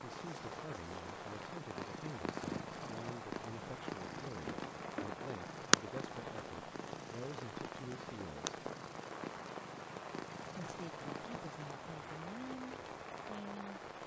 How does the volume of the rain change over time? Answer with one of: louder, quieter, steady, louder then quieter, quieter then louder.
steady.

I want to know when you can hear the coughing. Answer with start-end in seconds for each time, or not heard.
4.5-5.3.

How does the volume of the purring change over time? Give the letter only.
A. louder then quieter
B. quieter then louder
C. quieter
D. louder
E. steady
A.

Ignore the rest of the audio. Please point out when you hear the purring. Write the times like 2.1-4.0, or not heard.
0.2-11.7.